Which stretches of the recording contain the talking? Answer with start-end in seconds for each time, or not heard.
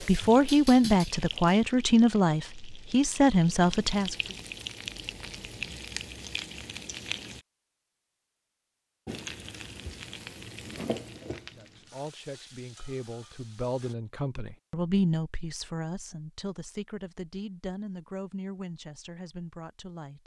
0.0-4.2, 11.6-20.2.